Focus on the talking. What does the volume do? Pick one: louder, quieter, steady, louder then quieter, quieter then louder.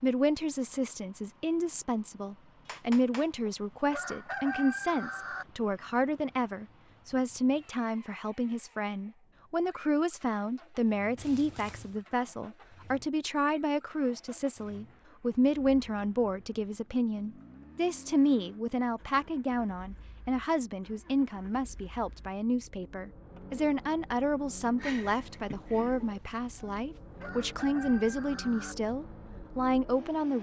steady.